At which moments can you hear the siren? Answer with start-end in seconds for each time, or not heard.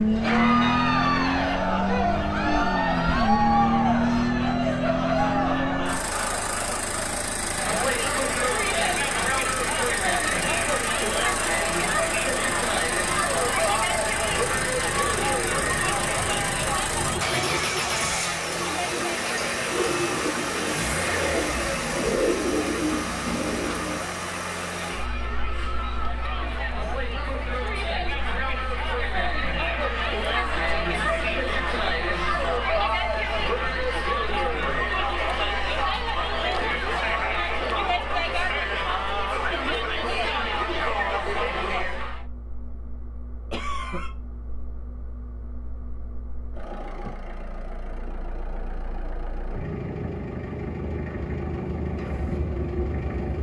not heard.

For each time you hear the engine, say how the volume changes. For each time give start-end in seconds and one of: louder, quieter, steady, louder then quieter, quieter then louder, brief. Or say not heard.
0.0-53.3 quieter then louder.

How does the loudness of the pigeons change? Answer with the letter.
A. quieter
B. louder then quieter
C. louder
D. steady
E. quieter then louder
C.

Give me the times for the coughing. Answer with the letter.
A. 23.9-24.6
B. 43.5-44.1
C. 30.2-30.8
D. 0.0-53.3
B.